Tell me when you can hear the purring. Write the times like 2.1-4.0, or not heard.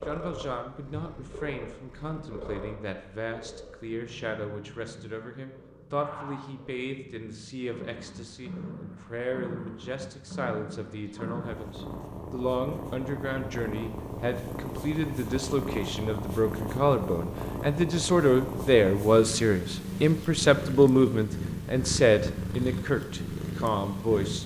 0.0-24.4.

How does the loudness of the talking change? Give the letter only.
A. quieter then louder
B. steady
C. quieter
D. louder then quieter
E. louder
E.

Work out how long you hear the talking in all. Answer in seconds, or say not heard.
24 s.